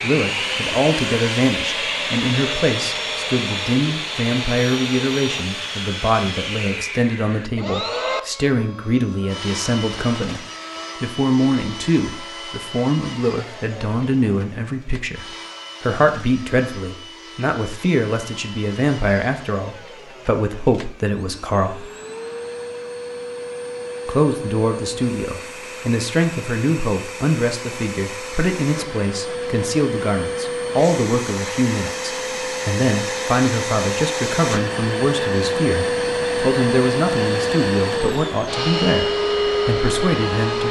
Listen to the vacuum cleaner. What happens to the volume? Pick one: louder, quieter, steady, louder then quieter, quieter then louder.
quieter then louder.